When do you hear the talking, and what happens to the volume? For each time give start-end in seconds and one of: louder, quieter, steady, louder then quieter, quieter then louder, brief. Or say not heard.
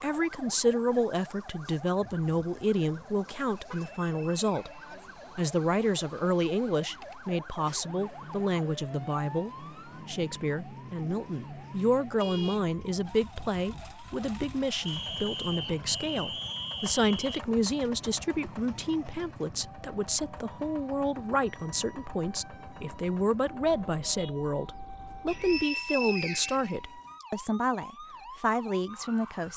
0.0-29.5 steady.